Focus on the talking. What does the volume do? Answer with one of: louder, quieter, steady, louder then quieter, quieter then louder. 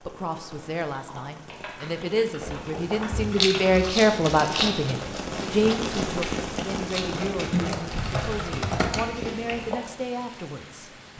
louder then quieter.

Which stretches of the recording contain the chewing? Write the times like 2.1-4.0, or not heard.
2.4-9.8.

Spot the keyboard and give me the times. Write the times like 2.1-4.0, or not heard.
0.9-3.8, 7.5-9.0.